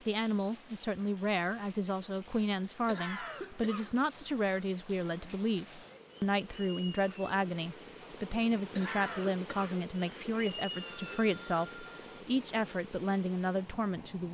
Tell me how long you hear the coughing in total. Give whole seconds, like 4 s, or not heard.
2 s.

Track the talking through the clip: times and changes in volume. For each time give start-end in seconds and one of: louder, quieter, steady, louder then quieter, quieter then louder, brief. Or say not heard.
0.1-14.2 steady.